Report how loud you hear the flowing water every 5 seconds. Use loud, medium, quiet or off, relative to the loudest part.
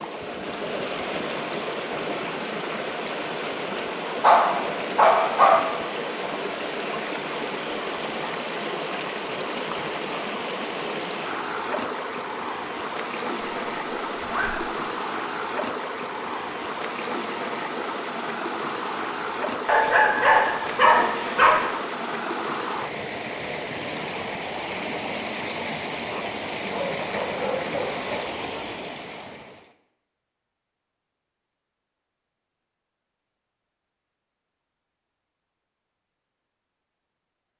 loud, loud, loud, loud, loud, loud, off, off.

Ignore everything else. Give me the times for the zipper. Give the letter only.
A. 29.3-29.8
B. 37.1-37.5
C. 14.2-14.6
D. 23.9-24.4
C.